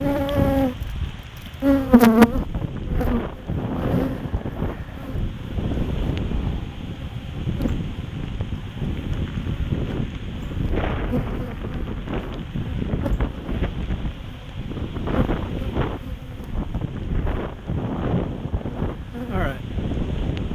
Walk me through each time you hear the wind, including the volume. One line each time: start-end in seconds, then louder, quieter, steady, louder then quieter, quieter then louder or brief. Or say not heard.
0.0-20.5 steady.